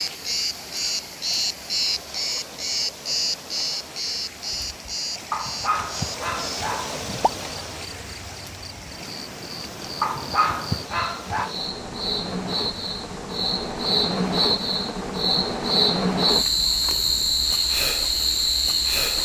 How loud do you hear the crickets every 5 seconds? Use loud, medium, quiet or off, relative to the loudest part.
medium, quiet, medium, loud.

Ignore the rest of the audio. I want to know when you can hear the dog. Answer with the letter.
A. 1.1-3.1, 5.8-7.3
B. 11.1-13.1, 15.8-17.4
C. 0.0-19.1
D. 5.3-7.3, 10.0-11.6
D.